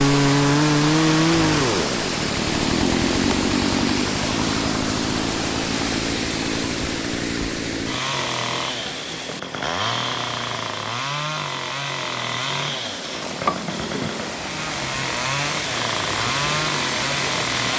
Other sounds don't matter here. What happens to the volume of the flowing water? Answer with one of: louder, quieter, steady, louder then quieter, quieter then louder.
quieter then louder.